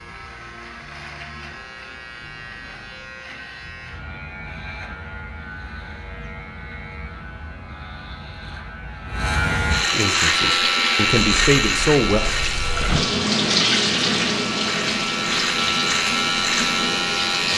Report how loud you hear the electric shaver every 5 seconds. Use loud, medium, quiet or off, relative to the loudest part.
quiet, medium, loud, loud.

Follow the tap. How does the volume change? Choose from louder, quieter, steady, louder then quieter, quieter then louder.
louder then quieter.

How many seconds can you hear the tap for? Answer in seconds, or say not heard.
7 s.